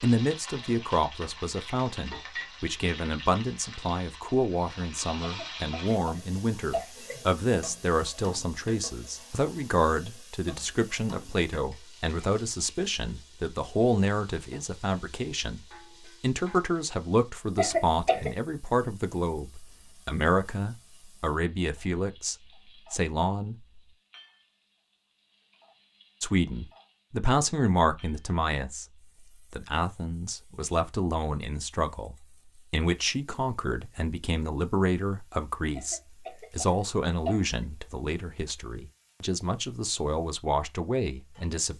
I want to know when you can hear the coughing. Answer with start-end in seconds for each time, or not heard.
5.2-7.2, 17.6-18.3, 35.8-37.6.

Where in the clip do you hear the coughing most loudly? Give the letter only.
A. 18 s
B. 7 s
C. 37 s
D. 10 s
A.